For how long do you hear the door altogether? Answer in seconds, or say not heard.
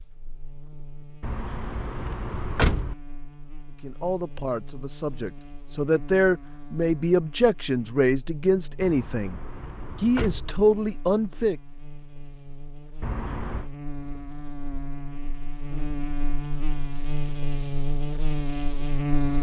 4 s.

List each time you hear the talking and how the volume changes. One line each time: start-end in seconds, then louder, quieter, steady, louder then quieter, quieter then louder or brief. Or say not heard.
3.8-9.4 louder
10.0-11.6 brief.